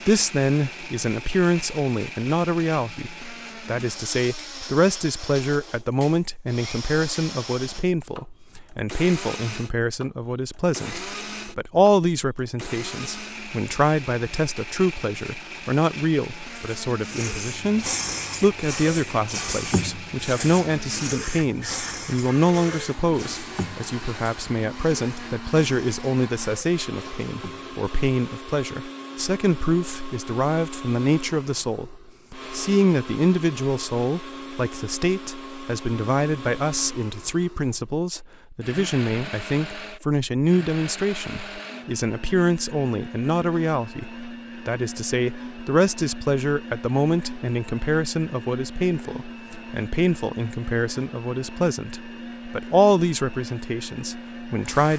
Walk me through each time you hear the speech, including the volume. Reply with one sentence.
The speech can be heard from 0.1 to 54.9 s, at a steady volume.